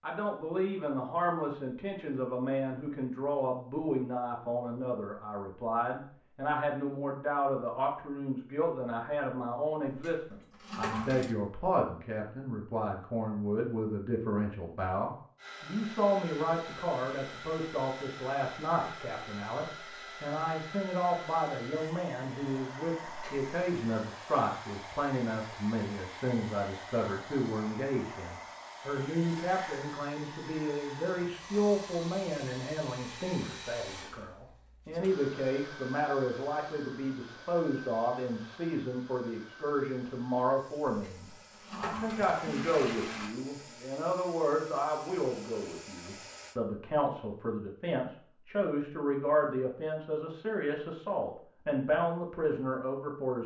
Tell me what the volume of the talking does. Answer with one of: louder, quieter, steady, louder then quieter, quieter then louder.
steady.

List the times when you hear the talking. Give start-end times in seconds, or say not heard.
0.0-53.4.